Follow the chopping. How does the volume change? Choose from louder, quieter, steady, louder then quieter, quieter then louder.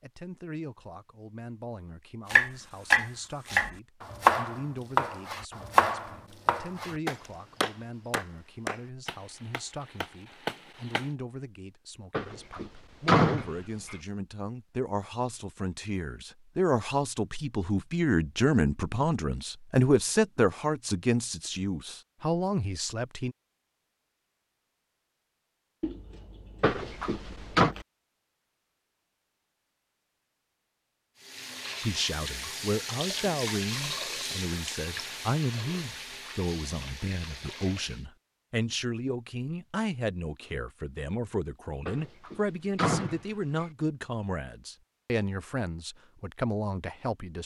quieter.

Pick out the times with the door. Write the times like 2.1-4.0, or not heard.
12.1-13.9, 26.6-27.8, 41.9-43.6.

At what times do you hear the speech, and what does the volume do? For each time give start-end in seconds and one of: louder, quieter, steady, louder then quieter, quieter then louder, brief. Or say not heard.
0.0-23.4 louder
31.8-47.4 steady.